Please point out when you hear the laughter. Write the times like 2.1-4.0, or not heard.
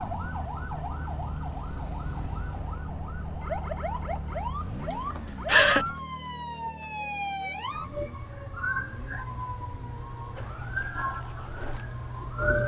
4.9-5.8.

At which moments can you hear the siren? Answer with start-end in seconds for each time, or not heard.
0.0-12.6.